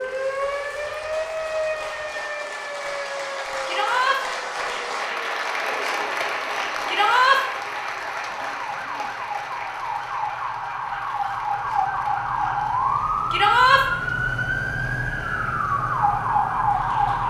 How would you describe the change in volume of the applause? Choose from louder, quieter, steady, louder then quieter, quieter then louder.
louder then quieter.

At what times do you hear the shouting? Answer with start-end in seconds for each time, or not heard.
3.6-4.2, 6.8-7.4, 13.3-13.8.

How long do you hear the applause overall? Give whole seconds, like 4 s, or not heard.
17 s.